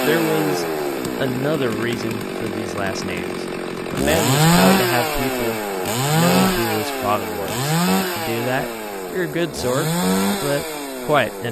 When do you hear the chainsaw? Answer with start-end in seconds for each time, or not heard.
0.0-11.4.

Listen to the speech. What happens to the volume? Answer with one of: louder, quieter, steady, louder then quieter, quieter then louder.
steady.